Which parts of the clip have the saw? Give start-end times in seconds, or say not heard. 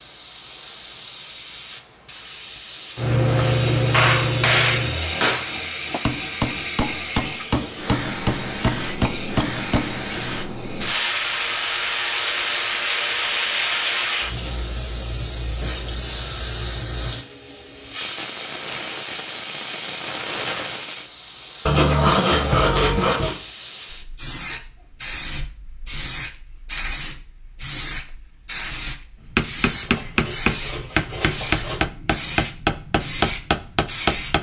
3.4-5.3, 8.8-11.5, 21.6-23.4, 29.8-31.9.